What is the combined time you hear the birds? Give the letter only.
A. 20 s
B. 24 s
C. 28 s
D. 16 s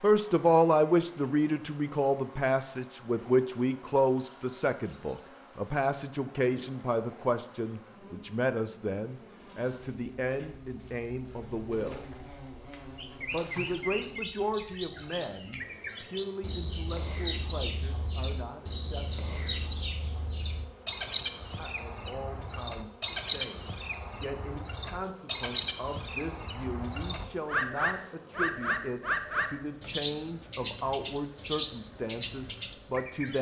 A.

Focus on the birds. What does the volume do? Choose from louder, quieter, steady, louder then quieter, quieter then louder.
louder.